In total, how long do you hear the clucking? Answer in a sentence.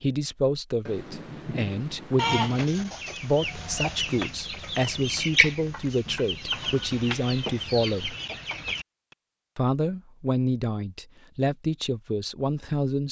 You can hear the clucking for 7 seconds altogether.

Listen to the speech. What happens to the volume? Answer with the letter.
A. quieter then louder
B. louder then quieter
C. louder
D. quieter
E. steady
E.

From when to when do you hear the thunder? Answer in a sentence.
The thunder can be heard from 0.8 to 2.6 s.